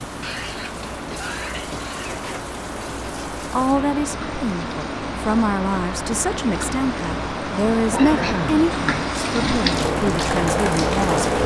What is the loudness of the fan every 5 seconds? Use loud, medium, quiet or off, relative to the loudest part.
medium, loud, loud.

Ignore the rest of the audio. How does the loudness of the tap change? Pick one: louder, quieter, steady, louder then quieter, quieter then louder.
louder.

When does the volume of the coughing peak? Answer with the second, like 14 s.
8 s.